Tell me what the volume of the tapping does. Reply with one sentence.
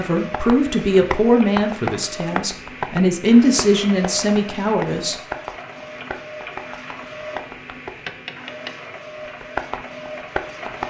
The loudness of the tapping goes down, then up.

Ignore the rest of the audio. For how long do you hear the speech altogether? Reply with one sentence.
You can hear the speech for 5 seconds altogether.